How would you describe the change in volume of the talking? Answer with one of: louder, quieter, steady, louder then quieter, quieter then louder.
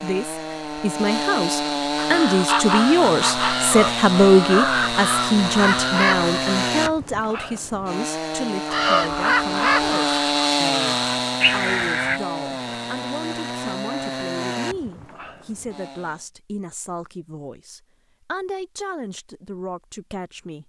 quieter.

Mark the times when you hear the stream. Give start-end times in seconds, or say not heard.
not heard.